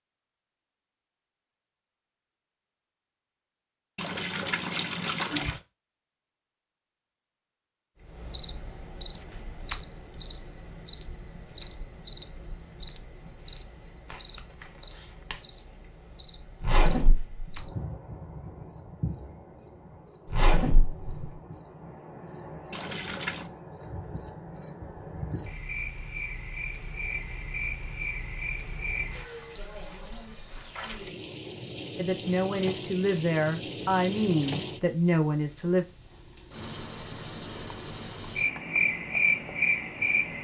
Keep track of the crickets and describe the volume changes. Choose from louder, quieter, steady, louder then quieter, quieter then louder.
quieter then louder.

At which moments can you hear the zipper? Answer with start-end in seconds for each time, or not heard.
16.6-17.6, 20.2-21.4.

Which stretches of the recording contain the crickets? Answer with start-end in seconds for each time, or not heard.
8.1-40.3.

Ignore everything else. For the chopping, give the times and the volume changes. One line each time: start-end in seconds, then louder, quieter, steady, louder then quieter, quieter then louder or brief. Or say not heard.
not heard.